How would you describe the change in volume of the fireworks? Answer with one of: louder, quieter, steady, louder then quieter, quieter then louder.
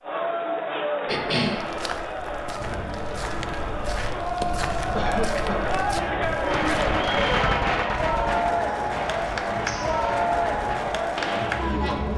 louder then quieter.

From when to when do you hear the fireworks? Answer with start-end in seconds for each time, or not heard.
2.5-11.8.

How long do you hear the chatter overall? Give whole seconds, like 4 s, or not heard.
12 s.